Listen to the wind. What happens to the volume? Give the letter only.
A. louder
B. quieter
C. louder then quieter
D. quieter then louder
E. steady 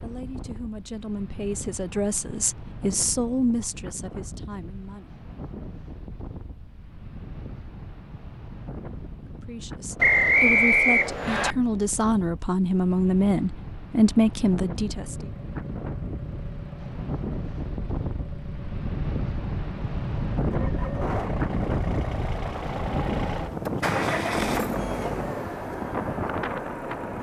A.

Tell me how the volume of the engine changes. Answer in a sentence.
The loudness of the engine goes up.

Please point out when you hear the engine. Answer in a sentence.
You can hear the engine from 14.9 to 27.1 s.